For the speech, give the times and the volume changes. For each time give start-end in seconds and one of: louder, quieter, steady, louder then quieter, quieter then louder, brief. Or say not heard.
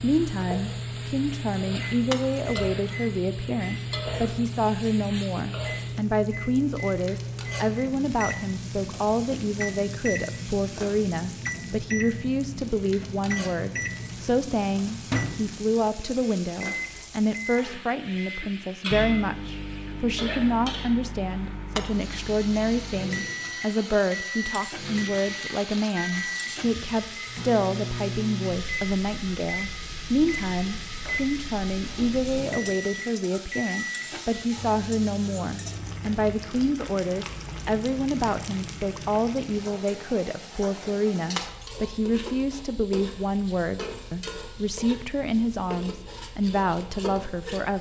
0.0-47.7 steady.